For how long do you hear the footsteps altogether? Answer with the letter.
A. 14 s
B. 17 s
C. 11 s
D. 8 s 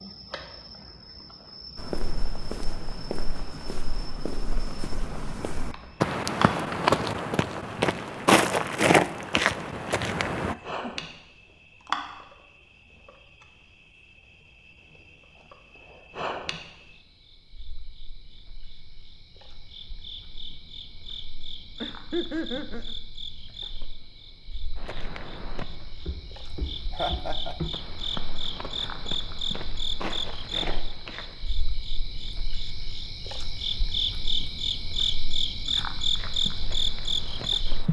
B.